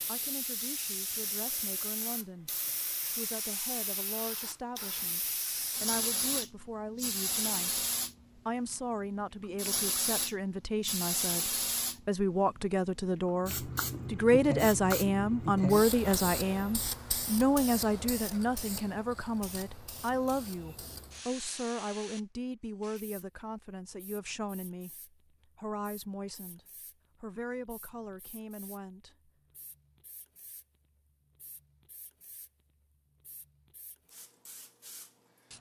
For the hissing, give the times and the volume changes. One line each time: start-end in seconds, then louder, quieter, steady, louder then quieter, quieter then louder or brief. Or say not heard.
0.0-35.5 quieter.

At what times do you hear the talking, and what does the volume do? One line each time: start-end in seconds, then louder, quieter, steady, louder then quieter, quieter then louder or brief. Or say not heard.
0.1-26.6 louder then quieter
27.2-29.3 brief.